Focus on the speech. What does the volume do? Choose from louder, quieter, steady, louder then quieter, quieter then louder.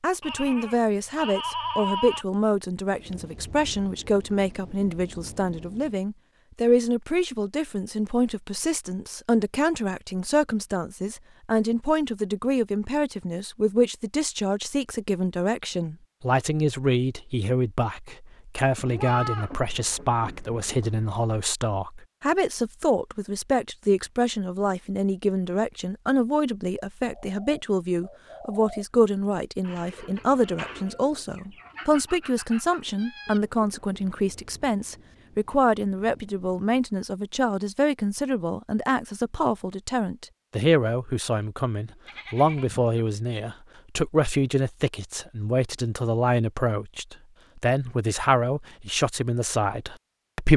steady.